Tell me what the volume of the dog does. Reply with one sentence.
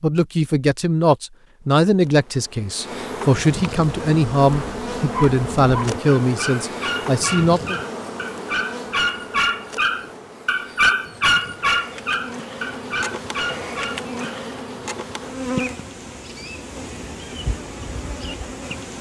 The volume of the dog goes up, then down.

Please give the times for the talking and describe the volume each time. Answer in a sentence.
The talking can be heard from 0.0 to 7.8 s, at a steady volume.